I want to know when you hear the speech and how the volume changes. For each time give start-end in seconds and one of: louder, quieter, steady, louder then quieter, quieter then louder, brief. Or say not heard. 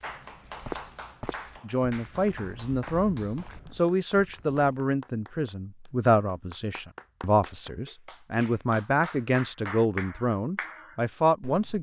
1.6-11.7 steady.